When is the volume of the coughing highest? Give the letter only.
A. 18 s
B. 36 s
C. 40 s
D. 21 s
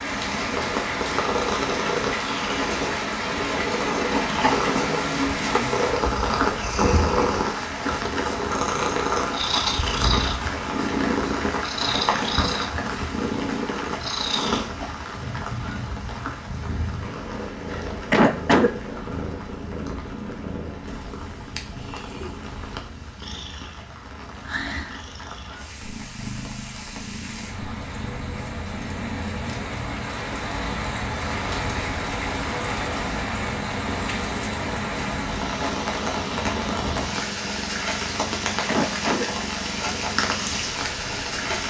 A.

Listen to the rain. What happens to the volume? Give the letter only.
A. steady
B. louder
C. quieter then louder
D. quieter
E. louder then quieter
C.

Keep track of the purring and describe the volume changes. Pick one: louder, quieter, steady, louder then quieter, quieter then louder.
quieter.